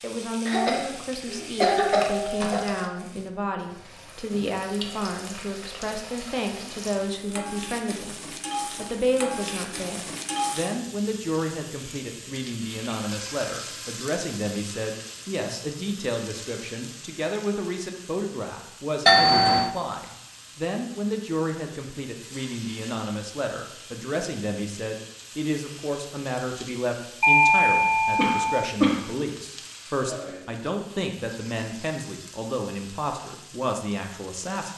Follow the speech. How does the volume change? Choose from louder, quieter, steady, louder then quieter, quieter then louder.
steady.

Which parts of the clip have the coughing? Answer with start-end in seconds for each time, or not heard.
0.5-2.6, 28.1-29.0.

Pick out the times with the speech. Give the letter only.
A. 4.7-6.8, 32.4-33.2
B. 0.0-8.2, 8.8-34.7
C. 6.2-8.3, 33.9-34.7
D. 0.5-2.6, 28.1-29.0
B.